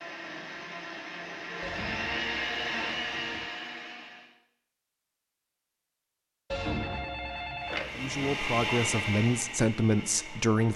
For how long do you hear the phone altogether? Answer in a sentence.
The phone can be heard for 4 seconds in total.